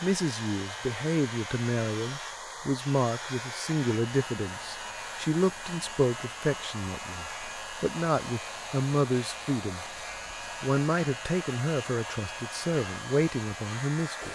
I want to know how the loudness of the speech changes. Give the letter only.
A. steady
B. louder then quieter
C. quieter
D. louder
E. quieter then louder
A.